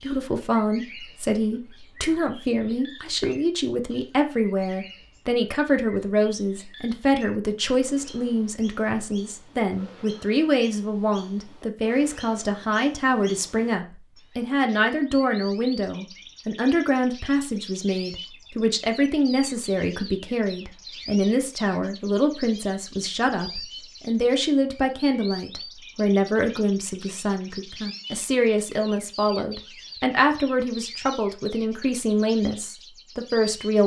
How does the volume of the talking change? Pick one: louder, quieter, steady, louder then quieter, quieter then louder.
steady.